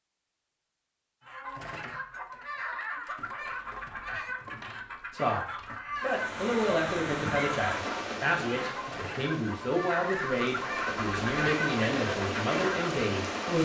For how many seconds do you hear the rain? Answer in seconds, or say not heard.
8 s.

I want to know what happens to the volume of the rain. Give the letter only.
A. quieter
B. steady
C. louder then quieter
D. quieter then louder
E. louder
D.